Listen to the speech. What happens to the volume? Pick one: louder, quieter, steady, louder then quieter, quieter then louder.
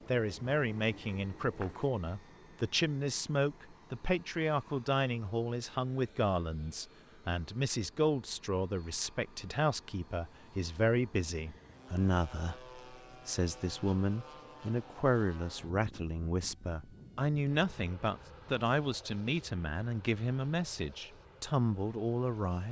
steady.